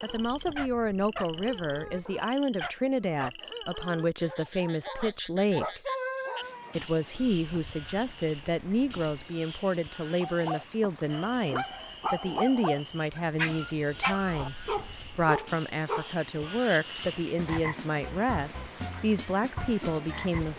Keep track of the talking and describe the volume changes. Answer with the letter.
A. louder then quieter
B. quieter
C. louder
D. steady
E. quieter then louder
D.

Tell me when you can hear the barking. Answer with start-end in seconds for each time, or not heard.
0.0-6.8, 10.2-16.6.